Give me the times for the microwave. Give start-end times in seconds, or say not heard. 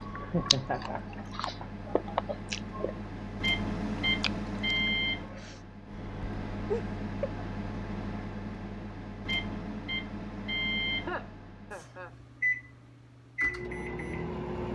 0.0-14.7.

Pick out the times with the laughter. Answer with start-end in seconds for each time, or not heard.
0.2-1.7, 6.7-7.5, 10.9-12.2.